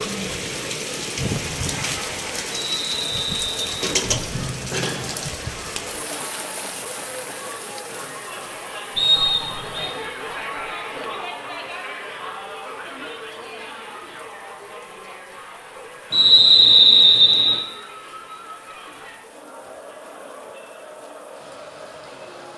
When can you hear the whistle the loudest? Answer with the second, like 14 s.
17 s.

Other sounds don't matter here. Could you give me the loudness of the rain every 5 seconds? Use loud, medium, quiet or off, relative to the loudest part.
loud, medium, quiet, quiet, quiet.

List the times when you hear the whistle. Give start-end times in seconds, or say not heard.
2.5-3.8, 8.9-9.9, 16.1-17.6.